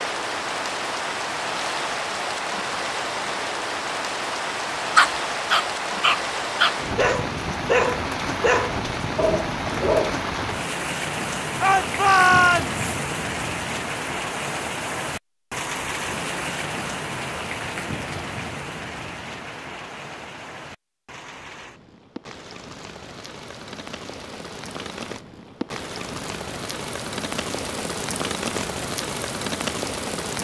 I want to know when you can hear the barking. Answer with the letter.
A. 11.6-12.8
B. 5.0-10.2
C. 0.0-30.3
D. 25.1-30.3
B.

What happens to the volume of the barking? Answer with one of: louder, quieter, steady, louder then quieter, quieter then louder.
quieter.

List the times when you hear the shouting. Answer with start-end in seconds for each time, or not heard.
11.6-12.8.